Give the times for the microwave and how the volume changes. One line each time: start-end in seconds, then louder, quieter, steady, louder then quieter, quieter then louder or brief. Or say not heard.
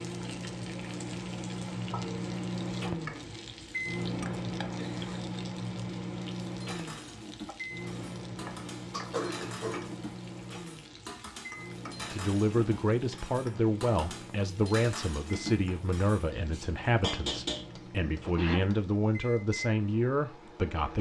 0.0-20.9 quieter.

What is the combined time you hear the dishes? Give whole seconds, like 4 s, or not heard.
11 s.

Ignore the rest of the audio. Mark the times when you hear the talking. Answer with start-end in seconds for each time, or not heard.
12.0-20.9.